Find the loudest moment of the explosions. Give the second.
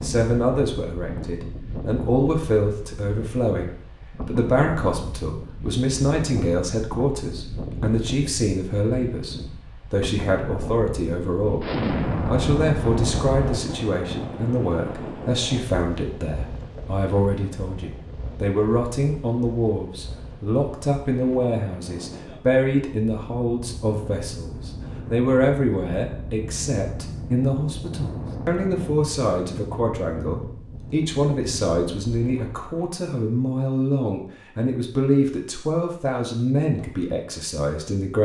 12 s.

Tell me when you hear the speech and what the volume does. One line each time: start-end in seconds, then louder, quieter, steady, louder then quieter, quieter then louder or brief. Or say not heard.
0.0-38.1 steady.